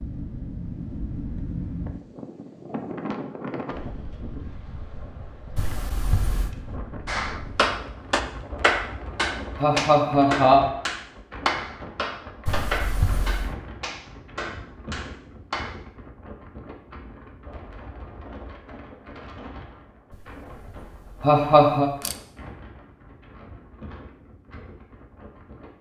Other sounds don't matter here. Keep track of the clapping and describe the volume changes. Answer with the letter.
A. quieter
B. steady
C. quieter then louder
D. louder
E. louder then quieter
A.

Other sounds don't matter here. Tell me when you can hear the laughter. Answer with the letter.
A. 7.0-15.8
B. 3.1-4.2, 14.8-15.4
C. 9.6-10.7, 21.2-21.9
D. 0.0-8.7
C.